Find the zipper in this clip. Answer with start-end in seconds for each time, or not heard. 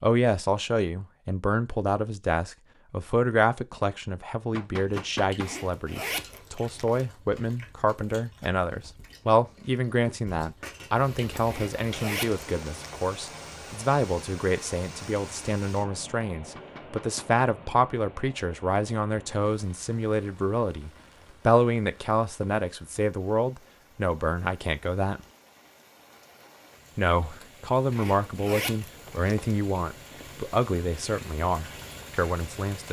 5.4-7.0, 11.4-13.0, 27.9-29.6.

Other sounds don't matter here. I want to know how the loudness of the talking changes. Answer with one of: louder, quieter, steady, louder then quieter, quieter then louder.
steady.